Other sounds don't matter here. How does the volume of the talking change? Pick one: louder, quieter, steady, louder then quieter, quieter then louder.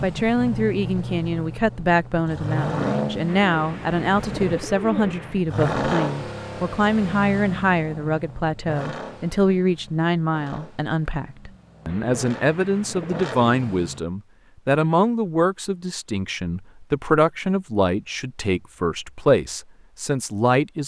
steady.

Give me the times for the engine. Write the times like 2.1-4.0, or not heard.
0.0-14.0.